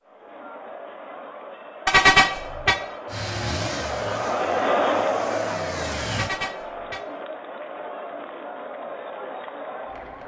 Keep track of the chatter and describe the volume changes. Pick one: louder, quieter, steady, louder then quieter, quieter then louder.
louder then quieter.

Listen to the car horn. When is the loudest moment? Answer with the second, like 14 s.
2 s.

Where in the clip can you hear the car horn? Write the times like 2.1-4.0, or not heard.
1.9-2.8, 6.1-7.0.